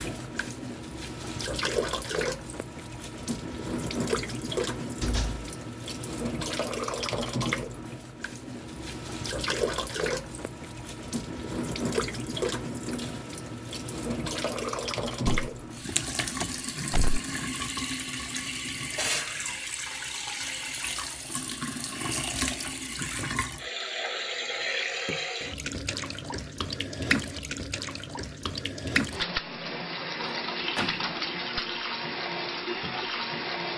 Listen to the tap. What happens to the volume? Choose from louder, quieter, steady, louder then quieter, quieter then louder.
steady.